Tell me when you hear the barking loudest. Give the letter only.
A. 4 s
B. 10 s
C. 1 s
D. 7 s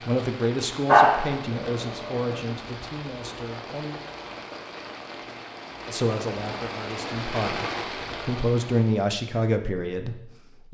C.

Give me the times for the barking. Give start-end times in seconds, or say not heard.
0.8-2.5.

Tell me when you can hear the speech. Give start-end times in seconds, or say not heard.
0.1-4.0, 5.8-10.6.